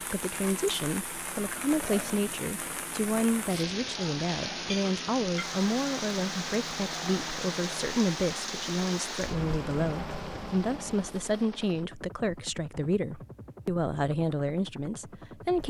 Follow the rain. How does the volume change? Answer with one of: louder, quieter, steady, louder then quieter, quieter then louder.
steady.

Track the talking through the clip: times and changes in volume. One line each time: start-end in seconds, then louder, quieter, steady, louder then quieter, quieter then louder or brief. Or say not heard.
0.1-15.6 steady.